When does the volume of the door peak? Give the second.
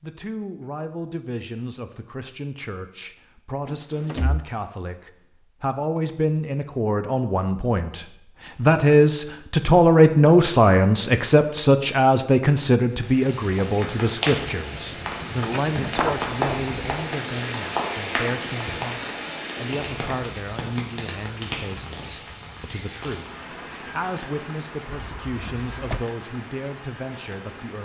16 s.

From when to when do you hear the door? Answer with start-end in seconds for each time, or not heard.
3.6-4.5, 15.4-16.1, 24.9-26.1.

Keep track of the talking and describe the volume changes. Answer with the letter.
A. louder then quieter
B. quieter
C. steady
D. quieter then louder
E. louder
A.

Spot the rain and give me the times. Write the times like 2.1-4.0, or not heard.
12.9-27.8.